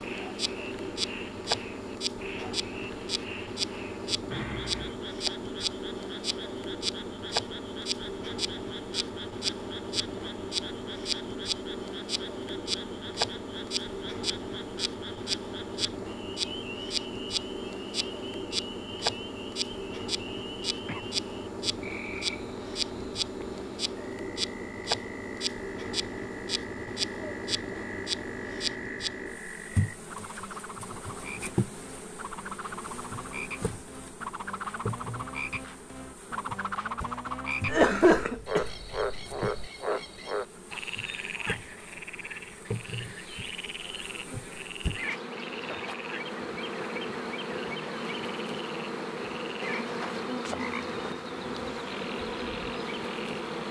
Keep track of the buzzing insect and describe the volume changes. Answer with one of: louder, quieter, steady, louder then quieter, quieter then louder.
quieter then louder.